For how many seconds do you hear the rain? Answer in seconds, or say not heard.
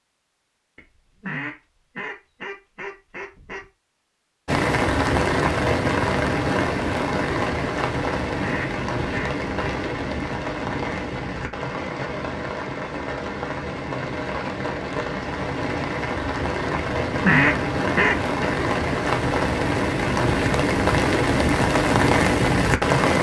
19 s.